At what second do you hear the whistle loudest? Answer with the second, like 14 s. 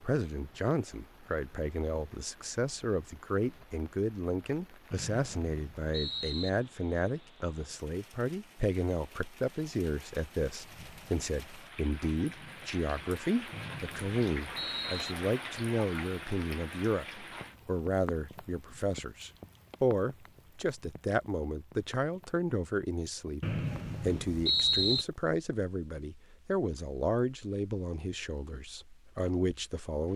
25 s.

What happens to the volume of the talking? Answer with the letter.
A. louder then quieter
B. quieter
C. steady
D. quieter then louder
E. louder
C.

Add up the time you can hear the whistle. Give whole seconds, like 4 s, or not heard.
5 s.